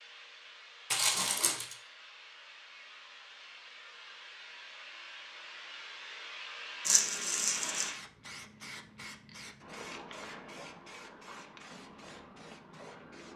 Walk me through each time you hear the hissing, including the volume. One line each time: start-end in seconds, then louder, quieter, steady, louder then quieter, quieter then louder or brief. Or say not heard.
0.0-13.3 louder then quieter.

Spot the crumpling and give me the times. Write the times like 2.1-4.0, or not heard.
0.9-1.8, 6.8-7.9.